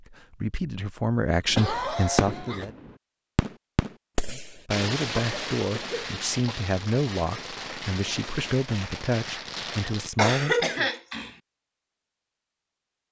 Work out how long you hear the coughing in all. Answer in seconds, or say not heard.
4 s.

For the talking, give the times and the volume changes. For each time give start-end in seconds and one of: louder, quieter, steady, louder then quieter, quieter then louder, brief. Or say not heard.
0.0-2.8 brief
4.3-10.9 steady.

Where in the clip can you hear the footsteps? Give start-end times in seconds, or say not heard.
not heard.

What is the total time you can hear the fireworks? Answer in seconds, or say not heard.
9 s.